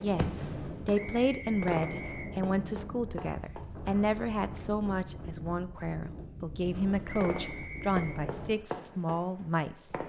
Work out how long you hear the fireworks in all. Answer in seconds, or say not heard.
7 s.